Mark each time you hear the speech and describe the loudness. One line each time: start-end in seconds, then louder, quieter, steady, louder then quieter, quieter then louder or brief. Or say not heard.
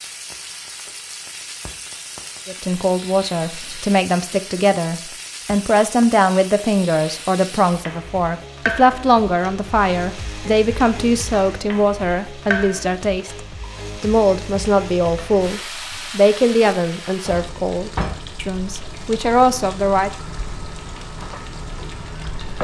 2.5-20.1 steady.